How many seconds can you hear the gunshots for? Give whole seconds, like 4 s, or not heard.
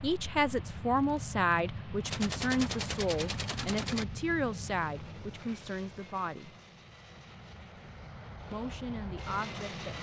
2 s.